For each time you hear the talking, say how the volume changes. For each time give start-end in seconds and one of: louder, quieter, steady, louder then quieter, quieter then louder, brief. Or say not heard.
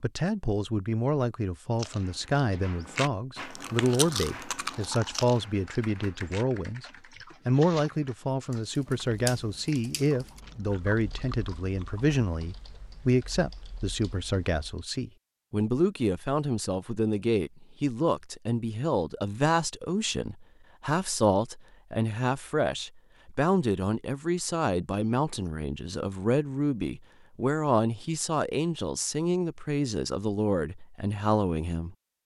0.0-6.8 steady
7.5-31.9 steady.